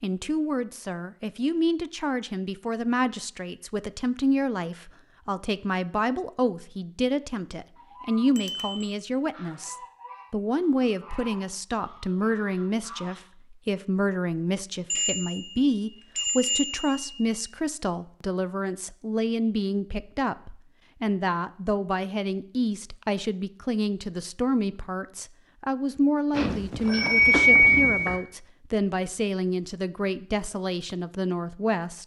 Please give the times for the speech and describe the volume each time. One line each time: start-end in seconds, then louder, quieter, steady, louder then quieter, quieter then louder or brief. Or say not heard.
0.0-32.0 steady.